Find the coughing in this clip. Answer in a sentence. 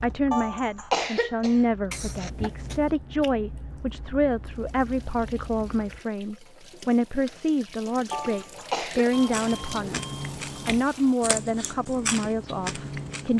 The coughing can be heard from 0.3 to 2.3 s and from 8.1 to 9.1 s.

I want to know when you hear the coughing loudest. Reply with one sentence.
The loudest moment of the coughing is at 1 second.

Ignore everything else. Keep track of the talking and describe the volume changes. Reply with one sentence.
The volume of the talking stays about the same.